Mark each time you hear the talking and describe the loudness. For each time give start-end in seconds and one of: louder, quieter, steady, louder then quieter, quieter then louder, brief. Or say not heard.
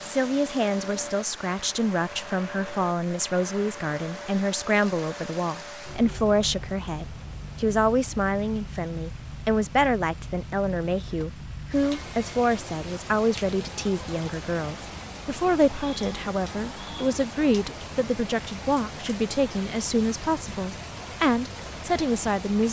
0.0-22.6 steady.